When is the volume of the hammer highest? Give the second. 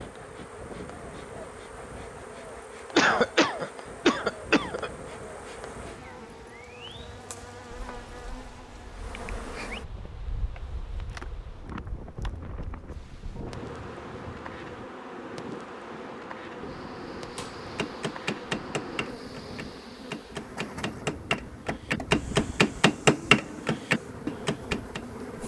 23 s.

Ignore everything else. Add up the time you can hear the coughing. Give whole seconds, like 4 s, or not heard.
2 s.